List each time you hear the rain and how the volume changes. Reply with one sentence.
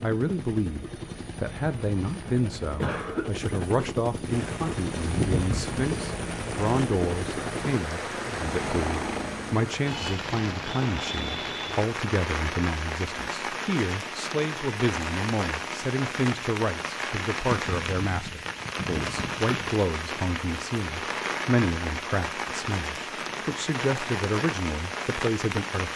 You can hear the rain from 4.2 to 25.9 s, at a steady volume.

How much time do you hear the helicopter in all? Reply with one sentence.
You can hear the helicopter for 10 seconds altogether.